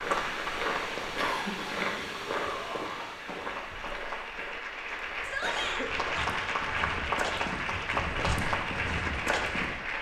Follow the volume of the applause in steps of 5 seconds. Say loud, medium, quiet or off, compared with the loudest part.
medium, loud.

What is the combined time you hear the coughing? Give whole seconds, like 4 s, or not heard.
2 s.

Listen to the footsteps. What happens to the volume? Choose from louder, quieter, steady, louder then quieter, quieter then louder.
quieter then louder.